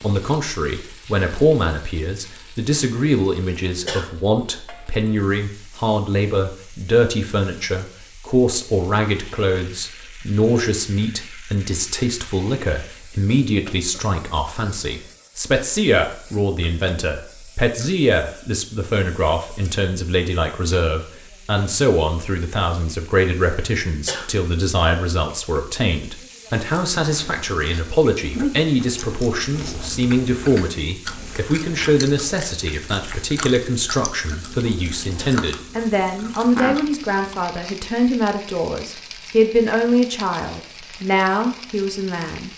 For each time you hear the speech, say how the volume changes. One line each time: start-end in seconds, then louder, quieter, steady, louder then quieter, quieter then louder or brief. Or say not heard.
0.0-42.5 steady.